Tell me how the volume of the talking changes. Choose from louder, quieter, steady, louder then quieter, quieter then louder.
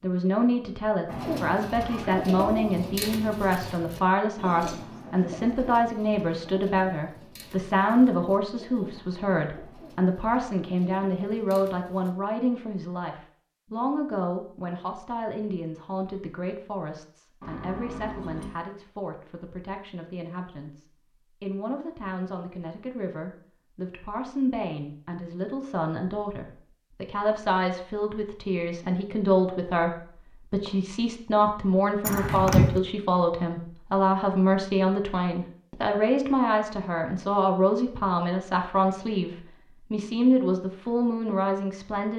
quieter then louder.